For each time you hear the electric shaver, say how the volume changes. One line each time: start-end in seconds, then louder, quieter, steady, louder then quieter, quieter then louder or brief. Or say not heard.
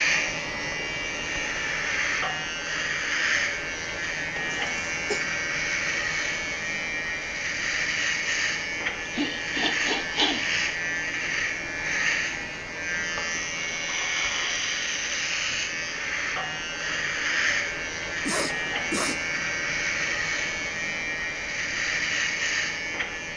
0.0-23.3 steady.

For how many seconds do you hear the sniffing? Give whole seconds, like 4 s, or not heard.
3 s.